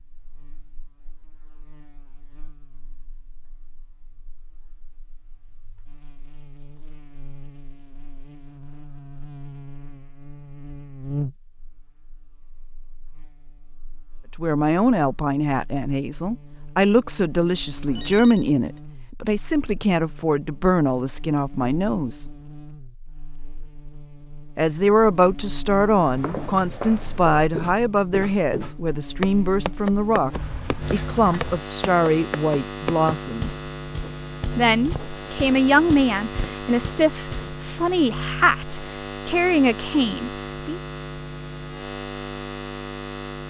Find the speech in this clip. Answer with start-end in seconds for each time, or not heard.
14.4-22.2, 24.6-33.6, 34.5-40.8.